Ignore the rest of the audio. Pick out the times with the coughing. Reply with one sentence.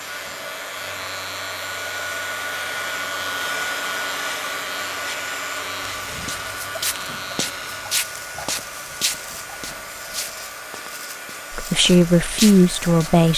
The coughing can't be heard in this clip.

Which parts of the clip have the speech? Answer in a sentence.
The speech can be heard from 11.5 to 13.3 s.